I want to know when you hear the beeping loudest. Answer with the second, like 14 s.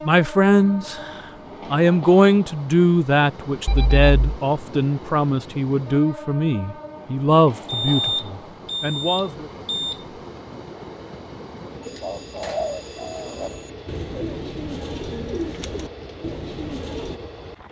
8 s.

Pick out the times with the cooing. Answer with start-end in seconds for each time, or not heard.
11.8-17.2.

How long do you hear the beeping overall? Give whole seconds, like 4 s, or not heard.
5 s.